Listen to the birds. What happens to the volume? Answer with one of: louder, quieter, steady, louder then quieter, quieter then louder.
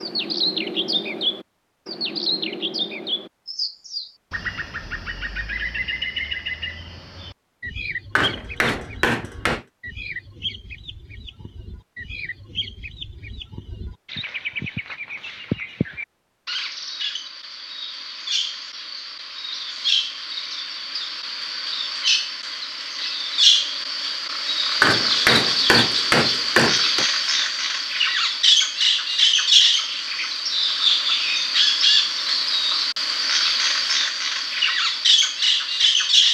quieter then louder.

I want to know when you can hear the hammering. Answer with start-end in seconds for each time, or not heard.
8.2-9.7, 24.8-27.1.